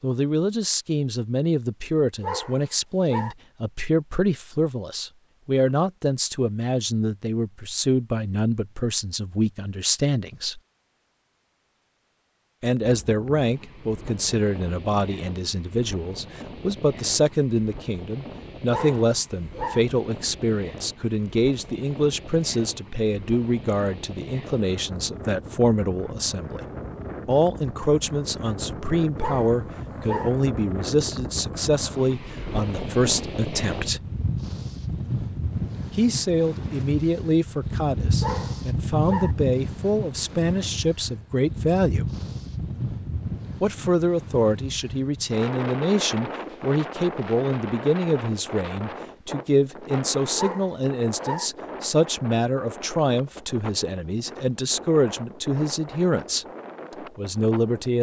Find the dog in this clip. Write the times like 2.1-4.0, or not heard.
2.2-3.4, 18.7-19.9, 29.2-30.3, 38.2-39.4, 50.4-51.5.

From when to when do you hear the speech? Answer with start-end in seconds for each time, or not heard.
0.0-10.6, 12.6-26.6, 27.2-34.0, 36.0-42.0, 43.6-56.5, 57.1-57.9.